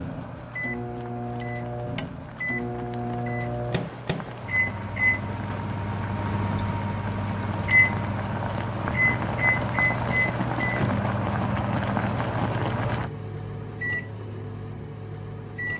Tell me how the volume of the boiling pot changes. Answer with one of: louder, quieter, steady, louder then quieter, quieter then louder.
louder.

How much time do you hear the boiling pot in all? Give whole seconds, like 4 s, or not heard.
13 s.